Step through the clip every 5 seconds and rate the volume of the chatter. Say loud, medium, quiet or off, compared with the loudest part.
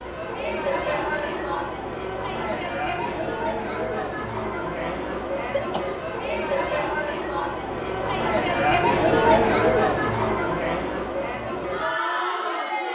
medium, loud, loud.